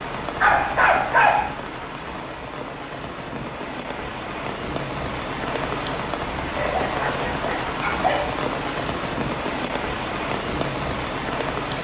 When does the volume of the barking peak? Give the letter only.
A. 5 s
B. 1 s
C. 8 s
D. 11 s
B.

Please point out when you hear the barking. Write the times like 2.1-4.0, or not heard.
0.4-1.5, 6.5-8.2.